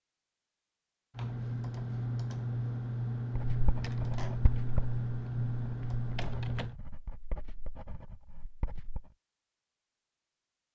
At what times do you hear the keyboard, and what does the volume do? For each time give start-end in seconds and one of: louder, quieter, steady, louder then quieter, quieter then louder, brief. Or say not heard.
1.1-6.8 steady.